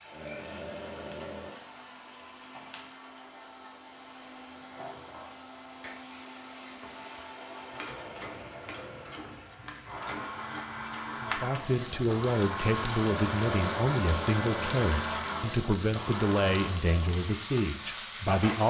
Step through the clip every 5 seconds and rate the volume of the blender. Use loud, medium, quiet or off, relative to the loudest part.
quiet, medium, loud, loud.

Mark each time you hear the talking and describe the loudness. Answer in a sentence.
The talking can be heard from 11.2 to 18.6 s, at a steady volume.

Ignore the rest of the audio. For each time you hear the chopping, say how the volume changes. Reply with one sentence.
You can't hear the chopping here.